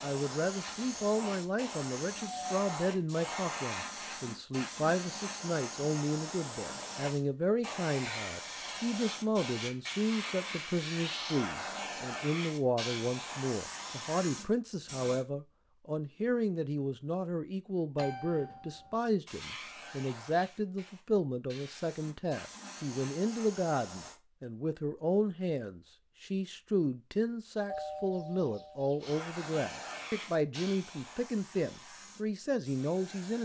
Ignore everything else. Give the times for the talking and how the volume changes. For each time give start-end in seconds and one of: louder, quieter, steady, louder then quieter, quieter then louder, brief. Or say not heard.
0.0-33.4 steady.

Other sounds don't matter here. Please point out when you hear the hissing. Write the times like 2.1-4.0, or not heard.
0.0-15.2, 19.2-24.2, 29.0-33.4.